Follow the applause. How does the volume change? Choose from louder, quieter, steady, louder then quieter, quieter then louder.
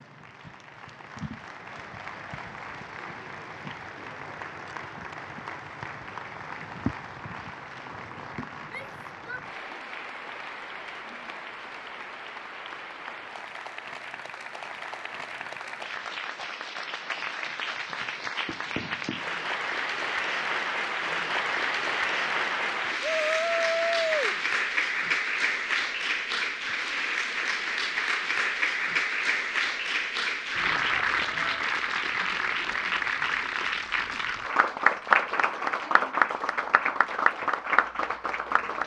louder.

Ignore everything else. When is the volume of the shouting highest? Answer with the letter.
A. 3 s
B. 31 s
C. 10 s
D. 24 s
D.